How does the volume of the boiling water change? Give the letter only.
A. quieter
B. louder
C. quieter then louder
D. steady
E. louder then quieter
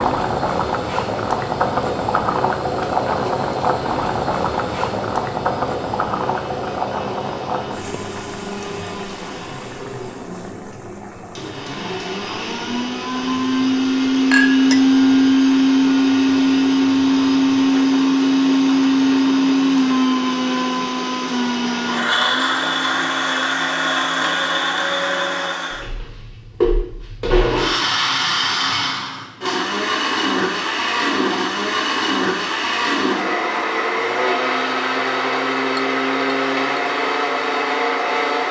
A.